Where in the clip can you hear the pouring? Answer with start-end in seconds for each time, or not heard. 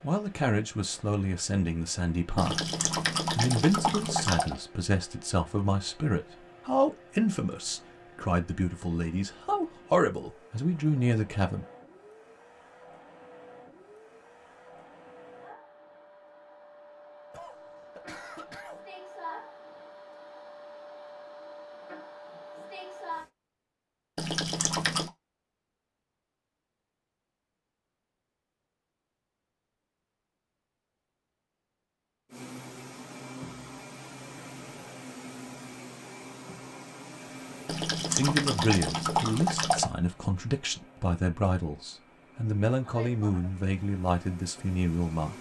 2.4-4.6, 24.1-25.1, 37.6-39.9.